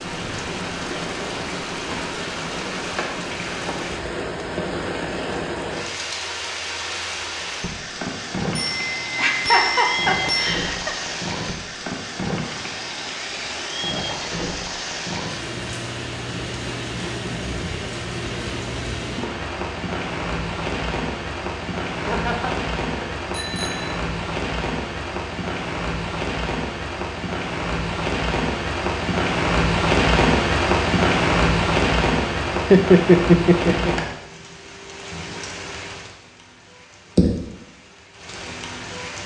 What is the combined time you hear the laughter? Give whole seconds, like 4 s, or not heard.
4 s.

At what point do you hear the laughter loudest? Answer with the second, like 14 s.
33 s.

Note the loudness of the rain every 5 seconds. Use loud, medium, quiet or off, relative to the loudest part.
medium, medium, medium, medium, medium, loud, loud, medium.